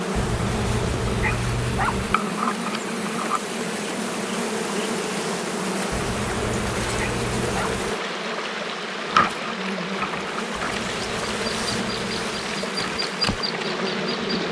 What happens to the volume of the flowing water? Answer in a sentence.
The volume of the flowing water stays about the same.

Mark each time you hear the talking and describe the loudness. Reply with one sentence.
You can't hear the talking here.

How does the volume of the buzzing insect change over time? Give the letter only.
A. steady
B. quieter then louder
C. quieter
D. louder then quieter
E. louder
A.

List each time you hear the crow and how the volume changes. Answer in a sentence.
You can't hear the crow here.